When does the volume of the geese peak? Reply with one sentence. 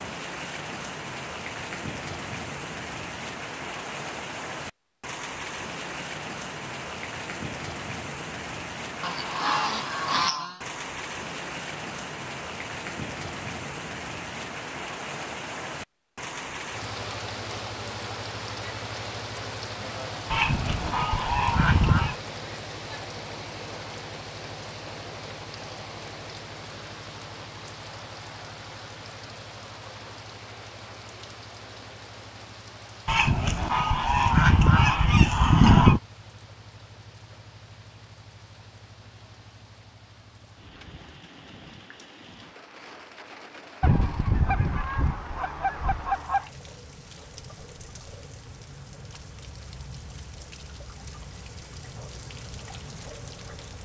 The volume of the geese peaks at 36 seconds.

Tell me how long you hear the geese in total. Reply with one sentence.
The geese can be heard for 9 seconds in total.